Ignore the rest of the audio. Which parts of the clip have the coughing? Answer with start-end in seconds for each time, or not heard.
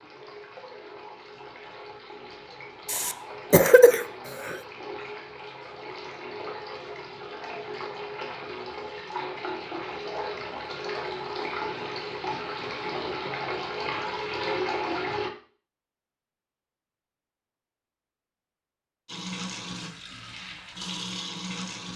2.9-4.6.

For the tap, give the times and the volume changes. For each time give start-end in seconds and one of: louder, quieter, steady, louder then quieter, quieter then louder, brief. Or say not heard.
0.0-15.3 louder
19.1-21.9 brief.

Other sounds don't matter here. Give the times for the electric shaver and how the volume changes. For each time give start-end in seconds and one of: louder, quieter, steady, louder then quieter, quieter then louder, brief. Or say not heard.
not heard.